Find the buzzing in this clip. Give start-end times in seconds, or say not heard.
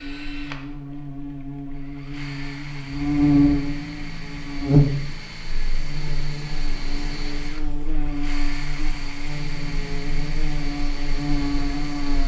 0.0-12.2.